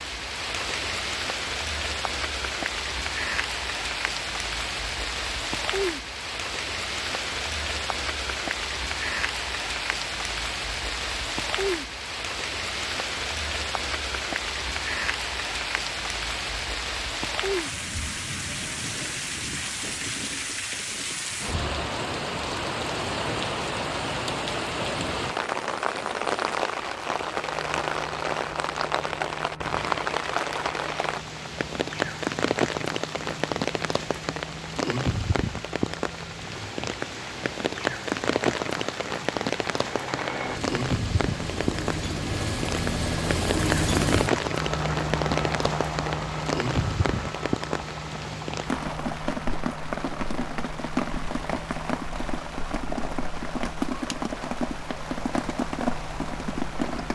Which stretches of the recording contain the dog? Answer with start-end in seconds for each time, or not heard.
not heard.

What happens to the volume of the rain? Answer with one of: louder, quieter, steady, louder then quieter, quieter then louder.
steady.